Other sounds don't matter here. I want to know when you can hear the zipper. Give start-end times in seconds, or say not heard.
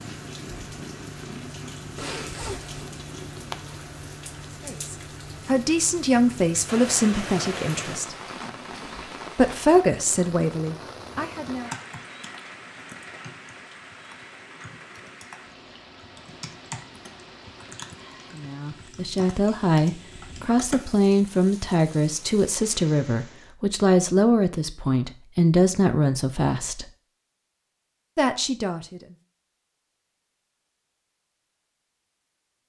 1.9-2.8.